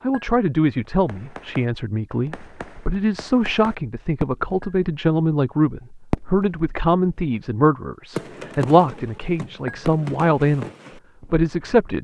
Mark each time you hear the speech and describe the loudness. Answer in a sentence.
The speech can be heard from 0.0 to 11.9 s, at a steady volume.